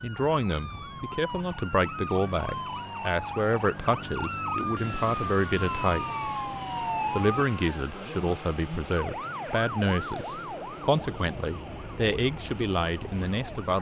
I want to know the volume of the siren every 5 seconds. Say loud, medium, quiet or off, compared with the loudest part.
loud, loud, medium.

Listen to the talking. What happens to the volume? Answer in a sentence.
The volume of the talking stays about the same.